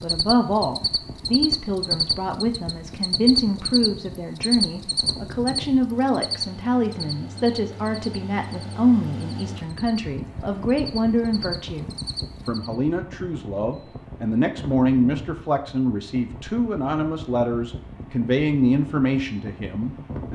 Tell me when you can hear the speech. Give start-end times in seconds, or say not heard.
0.0-20.2.